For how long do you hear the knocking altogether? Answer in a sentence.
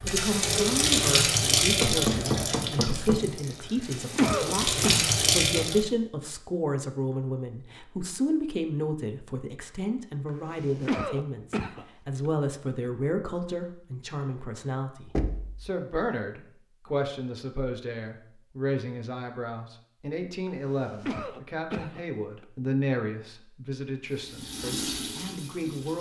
You can hear the knocking for 2 seconds altogether.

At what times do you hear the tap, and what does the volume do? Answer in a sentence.
You can hear the tap from 0.0 to 5.8 s, getting quieter then louder; and briefly from 24.1 to 25.9 s.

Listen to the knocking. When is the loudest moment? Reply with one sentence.
The volume of the knocking peaks at 2 seconds.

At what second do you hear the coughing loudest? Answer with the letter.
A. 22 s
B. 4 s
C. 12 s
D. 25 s
B.